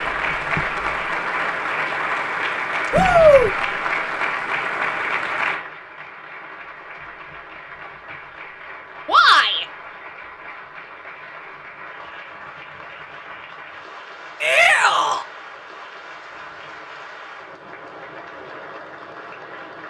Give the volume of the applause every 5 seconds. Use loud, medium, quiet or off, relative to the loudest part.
loud, medium, quiet, quiet.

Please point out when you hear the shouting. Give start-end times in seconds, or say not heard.
2.9-3.5, 9.1-9.7, 14.4-15.2.